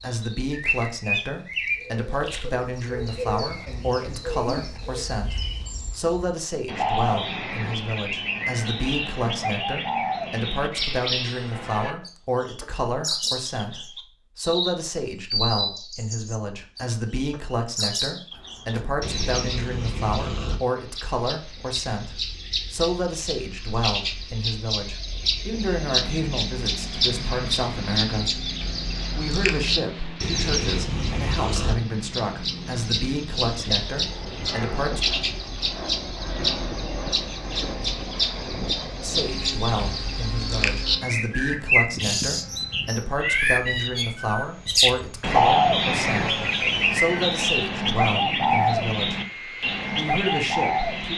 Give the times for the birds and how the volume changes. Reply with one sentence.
The birds can be heard from 0.0 to 51.1 s, getting louder.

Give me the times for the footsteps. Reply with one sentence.
You can't hear the footsteps here.